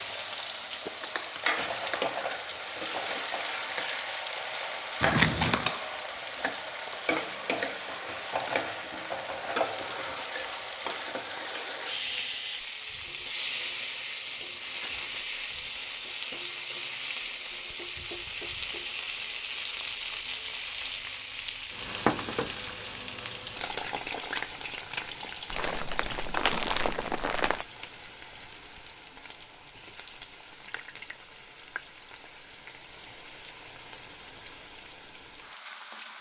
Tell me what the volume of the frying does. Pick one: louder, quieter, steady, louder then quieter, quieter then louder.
quieter.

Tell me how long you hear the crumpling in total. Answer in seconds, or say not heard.
4 s.